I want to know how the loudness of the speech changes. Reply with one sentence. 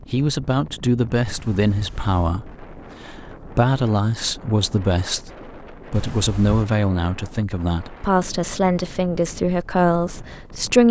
The loudness of the speech stays about the same.